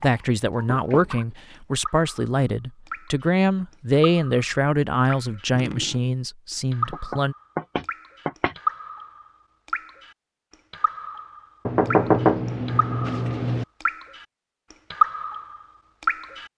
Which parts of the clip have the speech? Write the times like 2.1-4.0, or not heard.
0.0-7.3.